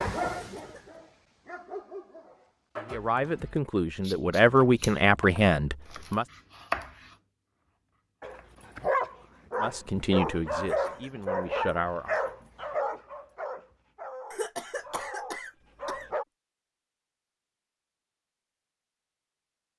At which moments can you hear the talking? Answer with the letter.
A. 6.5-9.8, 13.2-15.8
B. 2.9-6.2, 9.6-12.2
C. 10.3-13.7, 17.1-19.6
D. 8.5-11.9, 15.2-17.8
B.